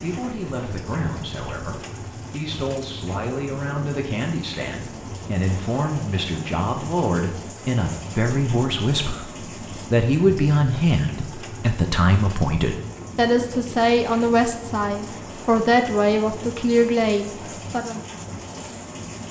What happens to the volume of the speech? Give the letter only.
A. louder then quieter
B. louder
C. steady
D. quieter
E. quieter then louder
B.